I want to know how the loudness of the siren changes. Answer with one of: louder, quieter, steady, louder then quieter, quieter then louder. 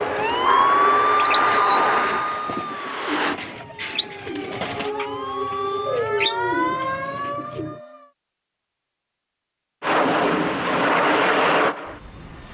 quieter then louder.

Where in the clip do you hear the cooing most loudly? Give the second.
6 s.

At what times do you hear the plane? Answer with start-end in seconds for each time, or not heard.
0.0-3.4, 9.8-12.4.